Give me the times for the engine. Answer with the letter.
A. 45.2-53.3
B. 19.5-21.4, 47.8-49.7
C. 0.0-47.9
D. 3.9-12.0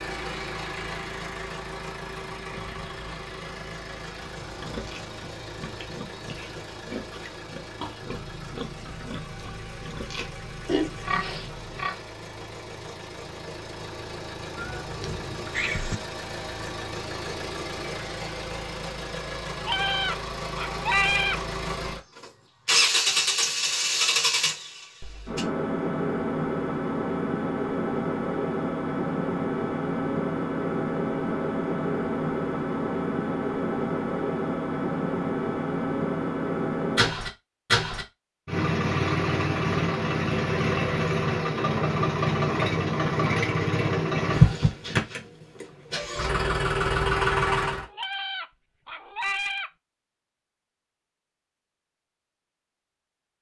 C.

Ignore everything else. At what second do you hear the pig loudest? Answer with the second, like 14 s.
11 s.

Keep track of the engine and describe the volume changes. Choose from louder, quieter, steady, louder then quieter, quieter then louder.
louder.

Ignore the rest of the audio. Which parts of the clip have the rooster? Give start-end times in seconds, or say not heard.
19.5-21.4, 47.8-49.7.